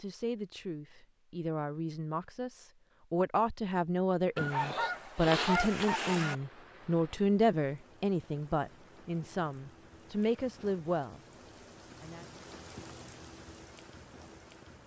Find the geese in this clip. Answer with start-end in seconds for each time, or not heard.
4.3-6.3.